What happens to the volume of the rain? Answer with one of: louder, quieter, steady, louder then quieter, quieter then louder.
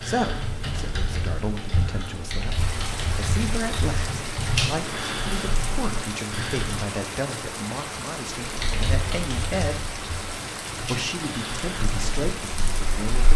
steady.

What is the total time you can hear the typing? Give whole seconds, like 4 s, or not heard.
12 s.